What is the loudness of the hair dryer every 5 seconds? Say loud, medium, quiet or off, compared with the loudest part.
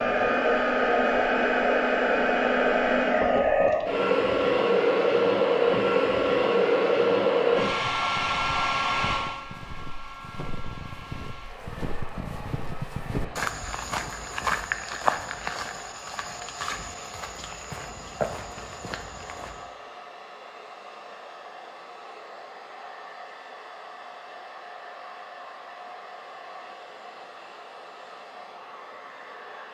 loud, loud, quiet, quiet, quiet, quiet.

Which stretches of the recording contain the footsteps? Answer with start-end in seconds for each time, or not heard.
7.7-19.7.